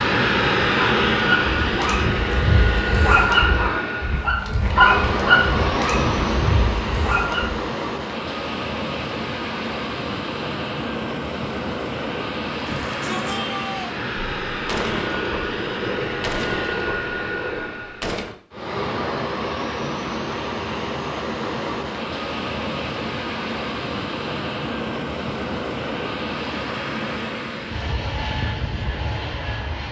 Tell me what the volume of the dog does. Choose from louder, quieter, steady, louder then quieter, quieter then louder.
louder then quieter.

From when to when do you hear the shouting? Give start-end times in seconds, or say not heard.
12.7-13.9.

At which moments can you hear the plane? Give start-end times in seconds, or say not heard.
0.0-29.8.